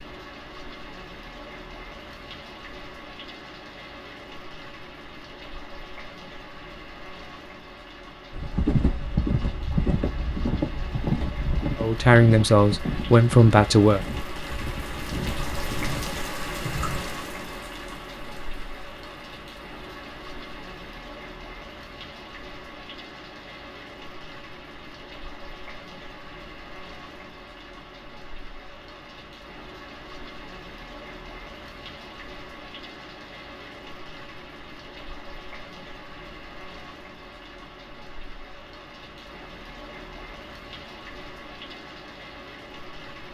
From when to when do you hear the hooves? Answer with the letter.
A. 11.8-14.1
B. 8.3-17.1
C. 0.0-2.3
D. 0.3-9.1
B.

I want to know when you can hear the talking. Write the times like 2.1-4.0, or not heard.
11.8-14.1.